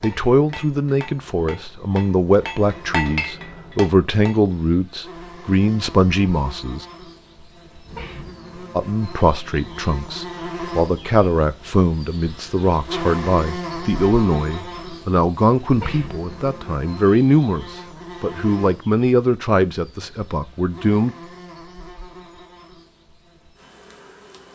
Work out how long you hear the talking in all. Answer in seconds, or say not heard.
19 s.